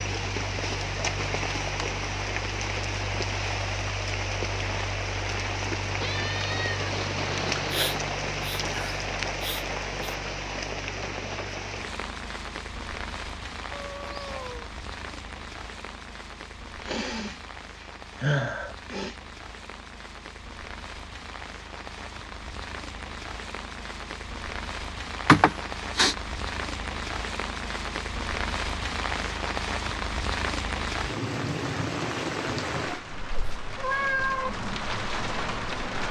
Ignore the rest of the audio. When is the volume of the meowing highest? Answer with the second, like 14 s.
34 s.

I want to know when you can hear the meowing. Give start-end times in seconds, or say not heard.
6.0-7.9, 13.7-14.7, 33.4-34.5.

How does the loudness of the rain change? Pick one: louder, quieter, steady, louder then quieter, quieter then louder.
quieter then louder.